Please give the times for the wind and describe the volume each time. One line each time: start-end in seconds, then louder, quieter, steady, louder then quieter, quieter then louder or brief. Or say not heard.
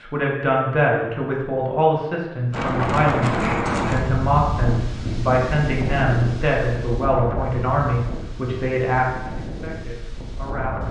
2.5-10.8 quieter.